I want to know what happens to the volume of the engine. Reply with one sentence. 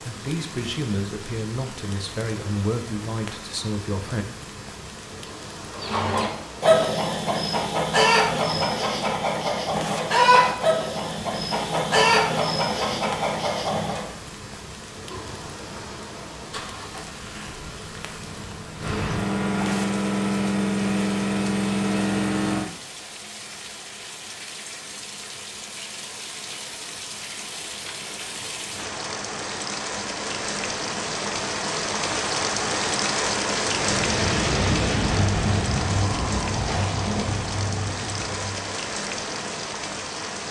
The volume of the engine goes up.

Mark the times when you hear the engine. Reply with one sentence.
You can hear the engine from 15.0 to 22.7 s.